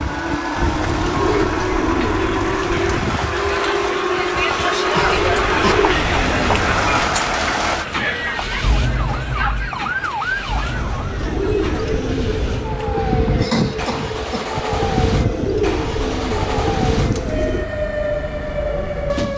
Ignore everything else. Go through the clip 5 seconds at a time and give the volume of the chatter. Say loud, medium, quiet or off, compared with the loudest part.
loud, loud, quiet, off.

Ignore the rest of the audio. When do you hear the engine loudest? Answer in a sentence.
The volume of the engine peaks at 7 seconds.